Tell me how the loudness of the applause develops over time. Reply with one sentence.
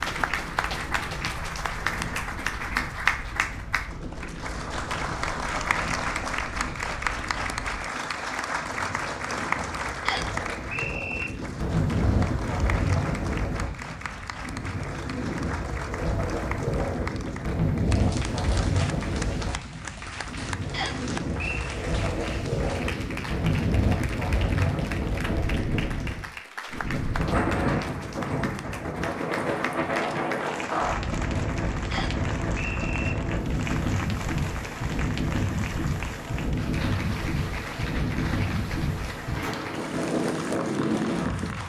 The volume of the applause goes down.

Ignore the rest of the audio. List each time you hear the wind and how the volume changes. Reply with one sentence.
You can hear the wind from 0.0 to 41.6 s, getting louder.